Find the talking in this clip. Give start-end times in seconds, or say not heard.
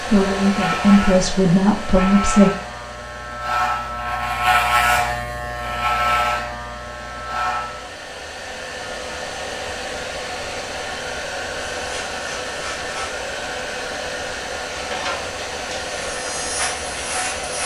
0.0-2.5.